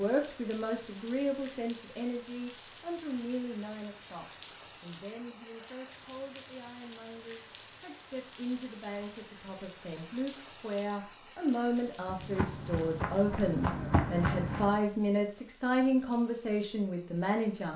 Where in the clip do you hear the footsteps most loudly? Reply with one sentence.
The loudest moment of the footsteps is at 14 seconds.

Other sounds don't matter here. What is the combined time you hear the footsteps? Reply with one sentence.
The footsteps can be heard for 3 seconds in total.